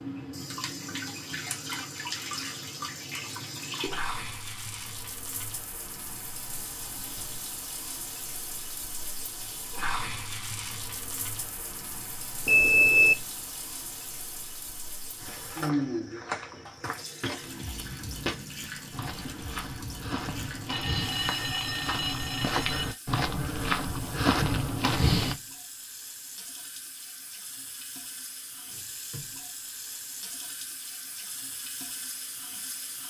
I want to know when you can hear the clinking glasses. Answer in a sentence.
The clinking glasses can't be heard in this clip.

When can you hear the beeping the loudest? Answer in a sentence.
The loudest moment of the beeping is at 13 seconds.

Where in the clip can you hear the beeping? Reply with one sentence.
The beeping can be heard from 12.4 to 13.2 s and from 20.2 to 22.9 s.